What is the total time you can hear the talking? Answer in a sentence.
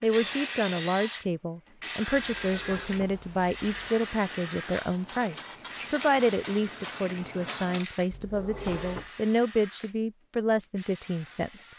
The talking can be heard for 12 seconds in total.